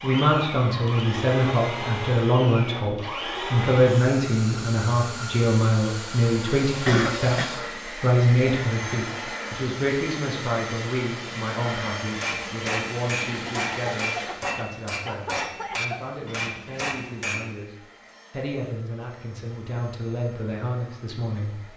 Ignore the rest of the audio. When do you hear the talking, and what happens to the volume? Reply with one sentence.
You can hear the talking from 0.0 to 21.7 s, getting quieter.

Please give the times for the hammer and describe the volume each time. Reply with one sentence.
The hammer can be heard from 12.1 to 17.5 s, at a steady volume.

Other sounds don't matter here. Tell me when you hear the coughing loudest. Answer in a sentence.
The loudest moment of the coughing is at 7 seconds.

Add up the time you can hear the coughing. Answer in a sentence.
You can hear the coughing for 3 seconds altogether.